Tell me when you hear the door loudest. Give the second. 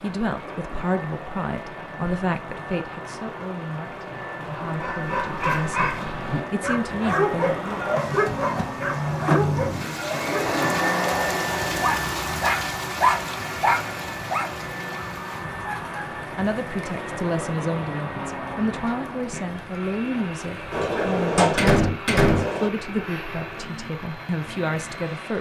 22 s.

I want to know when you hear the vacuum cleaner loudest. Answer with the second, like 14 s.
11 s.